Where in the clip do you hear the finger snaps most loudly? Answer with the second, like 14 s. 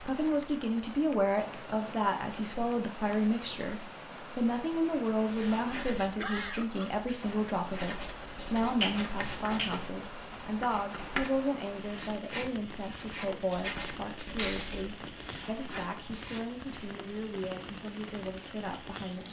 9 s.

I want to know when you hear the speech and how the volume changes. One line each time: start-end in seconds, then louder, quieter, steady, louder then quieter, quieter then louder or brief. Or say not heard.
0.0-19.2 quieter.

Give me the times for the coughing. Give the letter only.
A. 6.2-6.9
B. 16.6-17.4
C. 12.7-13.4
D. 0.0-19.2
A.